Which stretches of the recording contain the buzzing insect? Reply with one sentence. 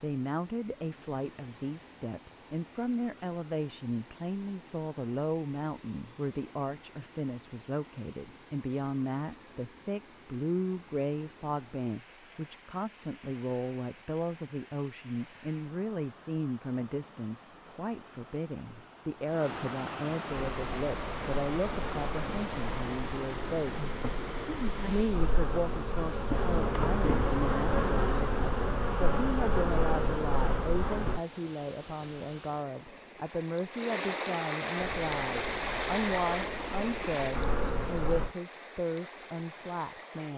You can hear the buzzing insect from 20.3 to 31.2 s and from 34.8 to 38.3 s.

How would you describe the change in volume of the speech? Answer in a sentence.
The loudness of the speech stays about the same.